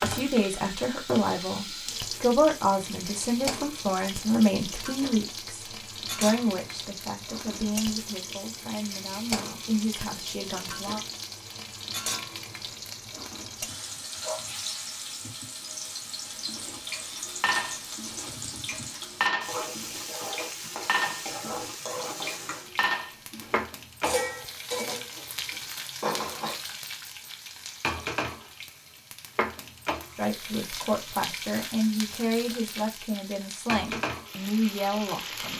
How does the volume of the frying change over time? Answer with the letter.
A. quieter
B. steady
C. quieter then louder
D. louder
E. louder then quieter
B.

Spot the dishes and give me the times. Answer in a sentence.
The dishes can be heard from 16.4 to 26.6 s.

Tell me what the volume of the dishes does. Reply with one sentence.
The volume of the dishes stays about the same.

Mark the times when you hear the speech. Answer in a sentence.
You can hear the speech from 0.0 to 11.0 s and from 30.1 to 35.5 s.